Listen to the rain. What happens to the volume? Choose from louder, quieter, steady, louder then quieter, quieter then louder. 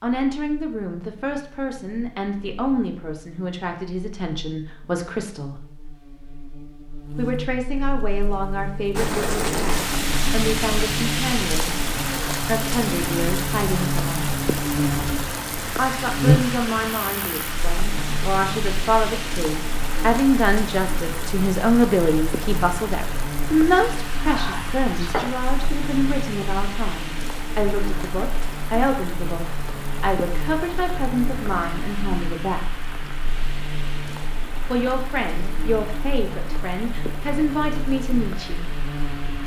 quieter.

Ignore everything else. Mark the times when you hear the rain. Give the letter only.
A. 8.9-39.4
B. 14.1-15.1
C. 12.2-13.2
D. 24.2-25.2
A.